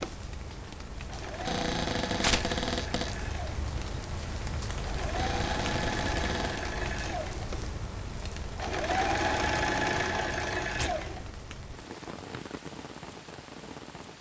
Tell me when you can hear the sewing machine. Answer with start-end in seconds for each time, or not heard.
0.0-11.6.